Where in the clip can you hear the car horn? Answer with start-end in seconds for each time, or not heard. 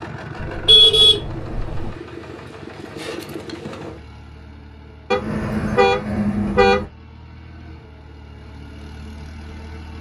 0.3-1.9, 5.1-6.8.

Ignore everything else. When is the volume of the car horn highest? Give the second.
1 s.